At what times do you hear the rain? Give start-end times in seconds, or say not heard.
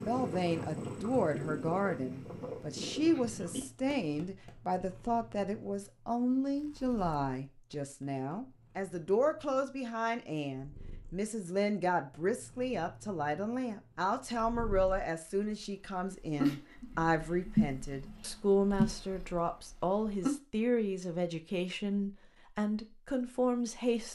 not heard.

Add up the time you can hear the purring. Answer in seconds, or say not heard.
20 s.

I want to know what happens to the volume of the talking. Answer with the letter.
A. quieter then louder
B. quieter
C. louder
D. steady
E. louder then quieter
D.